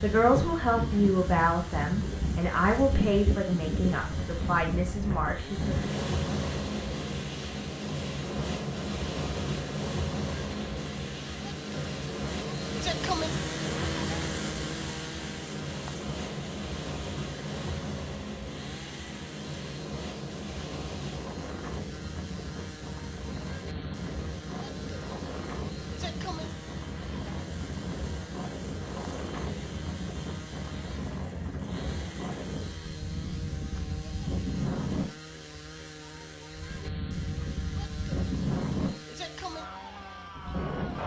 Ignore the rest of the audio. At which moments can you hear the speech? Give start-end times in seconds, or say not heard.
0.0-5.9.